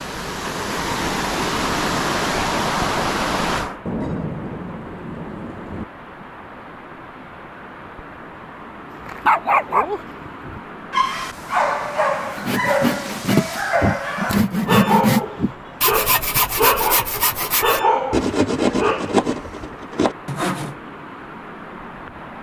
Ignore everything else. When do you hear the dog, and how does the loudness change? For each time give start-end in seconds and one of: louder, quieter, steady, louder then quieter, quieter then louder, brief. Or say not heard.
9.1-19.2 steady.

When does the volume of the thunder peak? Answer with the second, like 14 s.
4 s.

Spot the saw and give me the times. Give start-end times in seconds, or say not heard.
12.3-20.8.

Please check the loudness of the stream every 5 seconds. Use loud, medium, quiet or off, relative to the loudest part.
loud, quiet, quiet, quiet, quiet.